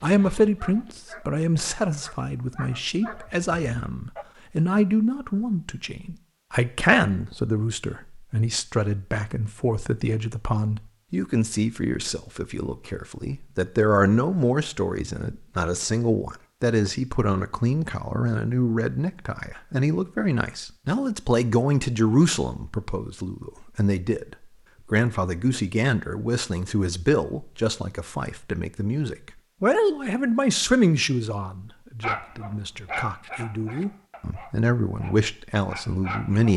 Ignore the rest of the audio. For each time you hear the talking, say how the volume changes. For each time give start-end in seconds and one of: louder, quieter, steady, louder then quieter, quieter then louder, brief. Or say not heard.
0.0-36.5 steady.